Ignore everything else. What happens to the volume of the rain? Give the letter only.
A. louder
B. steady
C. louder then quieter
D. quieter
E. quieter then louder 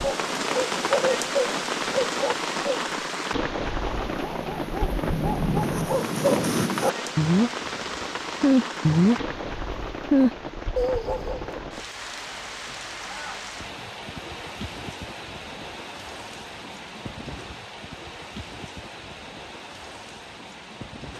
D.